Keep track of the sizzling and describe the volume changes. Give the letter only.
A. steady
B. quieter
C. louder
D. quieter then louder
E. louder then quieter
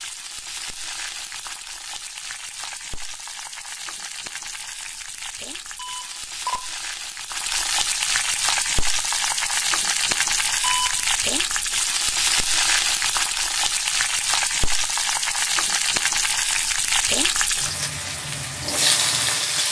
C.